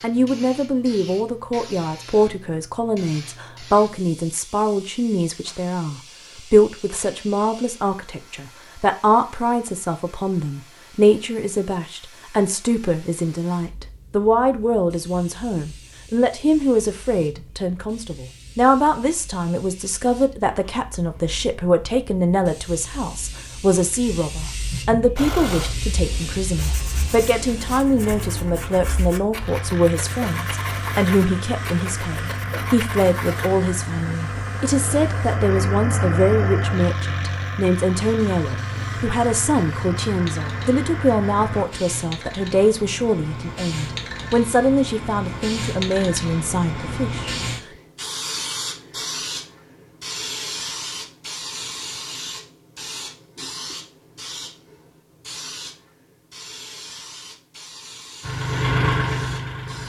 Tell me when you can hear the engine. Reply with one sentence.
The engine can be heard from 25.1 to 41.6 s and from 58.2 to 59.8 s.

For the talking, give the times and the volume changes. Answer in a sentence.
You can hear the talking from 0.0 to 47.4 s, at a steady volume.